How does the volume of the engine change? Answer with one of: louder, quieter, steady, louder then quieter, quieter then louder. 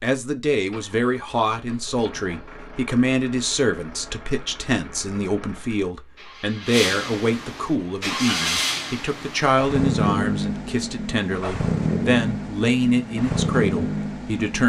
louder.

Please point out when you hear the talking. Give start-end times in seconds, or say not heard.
0.0-14.6.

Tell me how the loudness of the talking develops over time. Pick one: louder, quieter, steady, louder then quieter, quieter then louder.
steady.